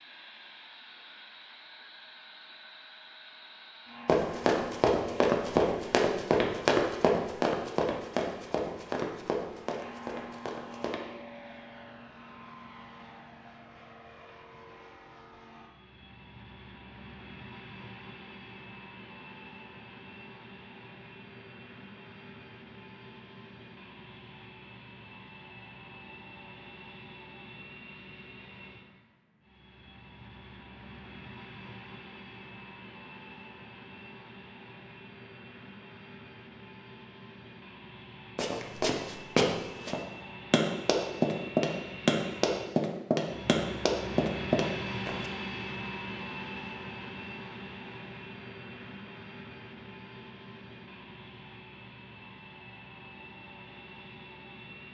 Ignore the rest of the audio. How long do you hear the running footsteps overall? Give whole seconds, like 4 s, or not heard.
14 s.